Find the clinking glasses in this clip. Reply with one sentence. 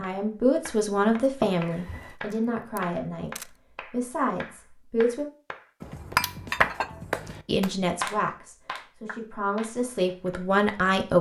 You can hear the clinking glasses from 1.4 to 2.1 s and from 5.8 to 7.4 s.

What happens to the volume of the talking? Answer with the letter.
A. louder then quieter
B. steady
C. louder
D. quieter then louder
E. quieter
D.